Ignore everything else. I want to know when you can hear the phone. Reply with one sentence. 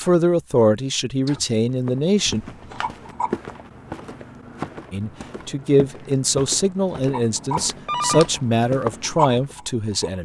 You can hear the phone from 2.2 to 3.0 s and from 7.8 to 8.8 s.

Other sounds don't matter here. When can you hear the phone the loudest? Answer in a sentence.
The volume of the phone peaks at 8 seconds.